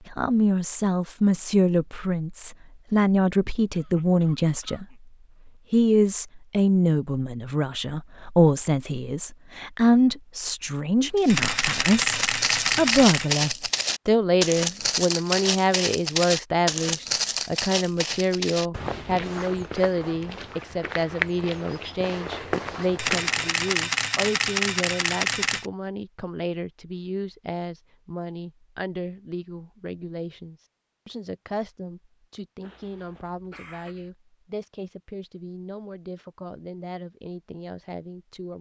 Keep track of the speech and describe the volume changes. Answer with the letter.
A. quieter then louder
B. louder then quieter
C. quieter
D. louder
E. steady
C.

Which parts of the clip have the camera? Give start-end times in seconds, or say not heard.
11.2-13.4, 22.9-25.6.